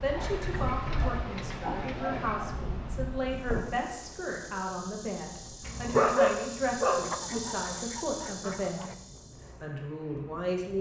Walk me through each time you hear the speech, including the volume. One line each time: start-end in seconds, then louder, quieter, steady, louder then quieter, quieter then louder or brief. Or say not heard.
0.0-8.9 steady
9.6-10.7 brief.